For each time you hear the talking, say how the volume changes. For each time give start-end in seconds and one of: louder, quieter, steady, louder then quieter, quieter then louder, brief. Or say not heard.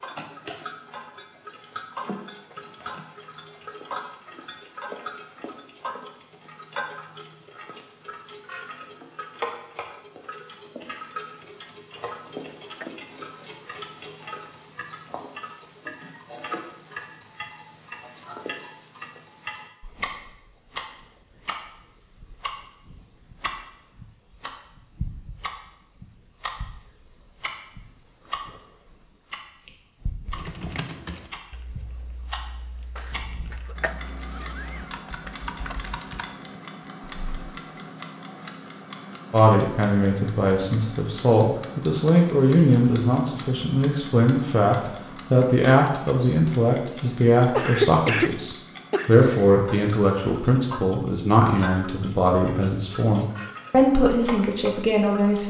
39.3-55.4 steady.